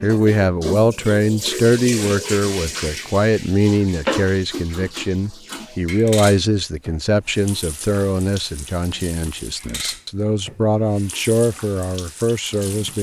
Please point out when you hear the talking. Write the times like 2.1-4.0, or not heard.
0.0-12.9.